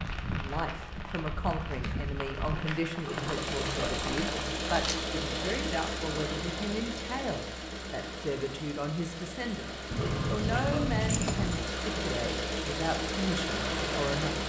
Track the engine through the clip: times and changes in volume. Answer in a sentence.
The engine can be heard from 3.0 to 14.4 s, getting quieter then louder.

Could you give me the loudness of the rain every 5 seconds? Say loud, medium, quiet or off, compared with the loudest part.
loud, medium, loud.